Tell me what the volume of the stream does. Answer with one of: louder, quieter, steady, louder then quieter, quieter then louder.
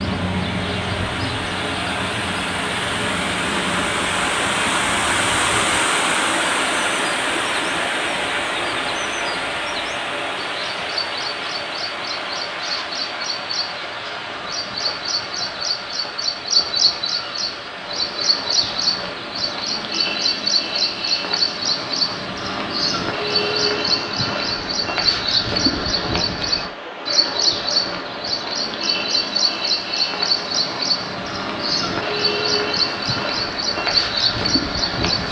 quieter.